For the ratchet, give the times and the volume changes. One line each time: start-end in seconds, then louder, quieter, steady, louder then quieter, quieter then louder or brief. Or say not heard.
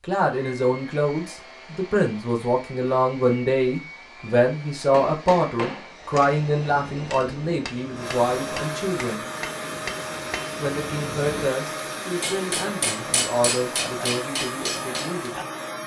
not heard.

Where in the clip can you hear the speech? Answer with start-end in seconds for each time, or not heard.
0.0-9.2, 10.6-15.3.